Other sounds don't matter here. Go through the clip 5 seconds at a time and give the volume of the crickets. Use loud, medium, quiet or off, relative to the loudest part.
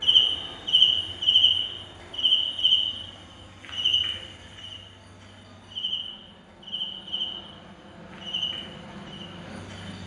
loud, quiet.